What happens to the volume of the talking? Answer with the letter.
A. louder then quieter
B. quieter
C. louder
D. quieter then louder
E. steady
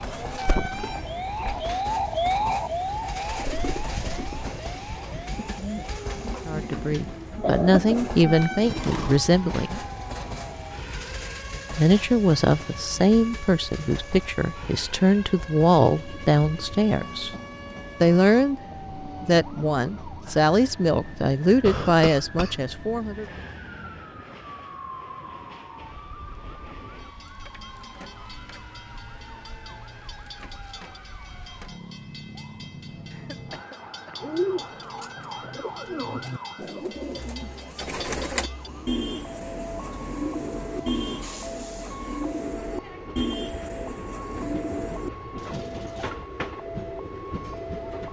E.